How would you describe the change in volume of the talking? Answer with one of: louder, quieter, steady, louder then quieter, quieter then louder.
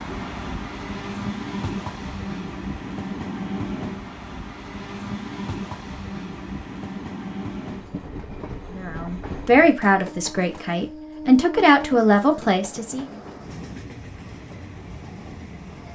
quieter then louder.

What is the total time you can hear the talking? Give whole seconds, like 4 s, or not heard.
4 s.